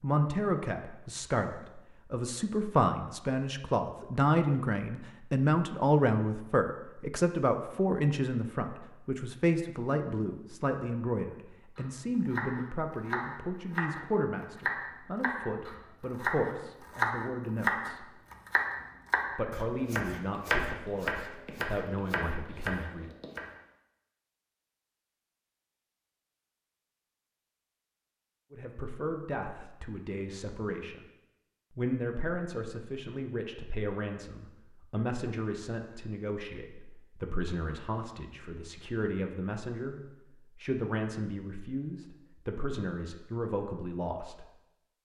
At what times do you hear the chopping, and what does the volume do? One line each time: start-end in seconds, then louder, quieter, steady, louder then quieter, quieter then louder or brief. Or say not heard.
11.8-23.4 louder then quieter.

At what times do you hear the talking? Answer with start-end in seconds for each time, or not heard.
0.0-18.1, 19.4-23.1, 28.5-31.1, 31.8-44.5.